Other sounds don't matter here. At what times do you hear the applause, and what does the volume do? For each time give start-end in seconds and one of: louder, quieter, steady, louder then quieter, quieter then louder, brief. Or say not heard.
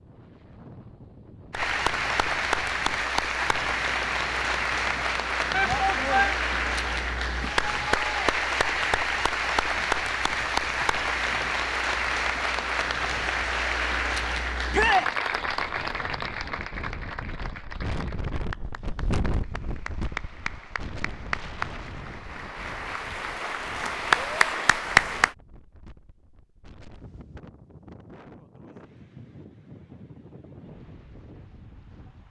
1.5-25.4 quieter then louder.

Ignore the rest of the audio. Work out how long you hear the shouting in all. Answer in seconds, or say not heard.
2 s.